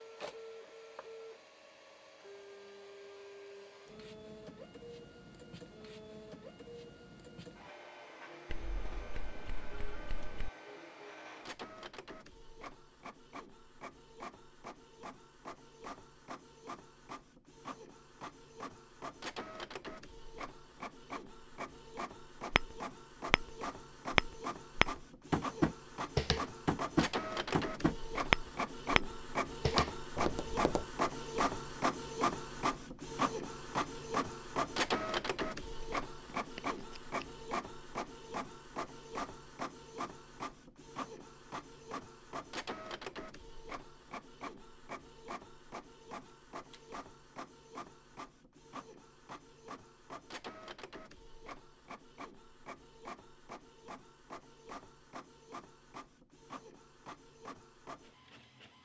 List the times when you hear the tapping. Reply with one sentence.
You can hear the tapping from 22.5 to 30.9 s.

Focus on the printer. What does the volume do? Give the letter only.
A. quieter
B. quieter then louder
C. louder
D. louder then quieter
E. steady
D.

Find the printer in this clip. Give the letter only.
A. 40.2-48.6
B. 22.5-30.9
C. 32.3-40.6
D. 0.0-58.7
D.